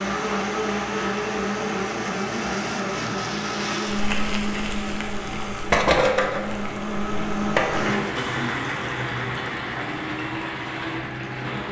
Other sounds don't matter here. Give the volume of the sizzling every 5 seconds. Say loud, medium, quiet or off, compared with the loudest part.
medium, loud, medium.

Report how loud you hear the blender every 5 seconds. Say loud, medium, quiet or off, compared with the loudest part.
loud, loud, medium.